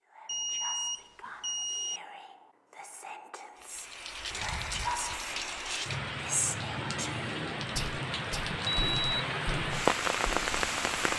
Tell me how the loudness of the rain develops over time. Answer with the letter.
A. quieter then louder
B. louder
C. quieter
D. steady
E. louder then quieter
B.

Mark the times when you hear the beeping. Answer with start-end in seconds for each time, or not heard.
0.2-2.0, 8.6-9.2.